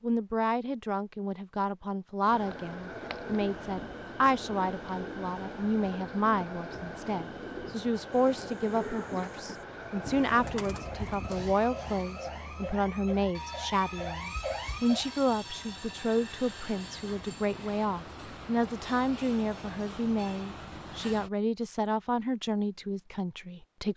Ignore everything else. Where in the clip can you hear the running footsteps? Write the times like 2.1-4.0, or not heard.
not heard.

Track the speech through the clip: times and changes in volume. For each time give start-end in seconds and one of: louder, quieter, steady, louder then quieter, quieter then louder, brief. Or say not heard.
0.0-23.9 steady.